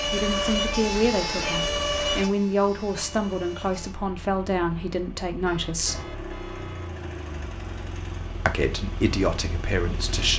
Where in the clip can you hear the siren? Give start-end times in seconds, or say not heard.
0.0-4.0.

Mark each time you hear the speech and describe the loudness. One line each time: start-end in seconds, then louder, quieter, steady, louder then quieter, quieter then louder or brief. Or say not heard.
0.1-6.0 steady
8.4-10.3 brief.